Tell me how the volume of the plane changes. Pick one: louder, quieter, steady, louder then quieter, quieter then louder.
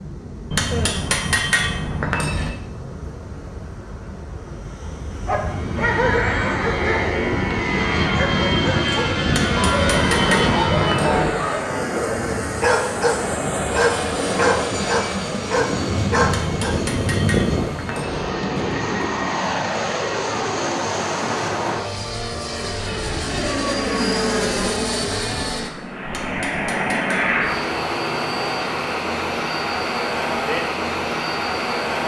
louder.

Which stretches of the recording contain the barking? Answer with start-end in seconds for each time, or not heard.
5.2-16.8.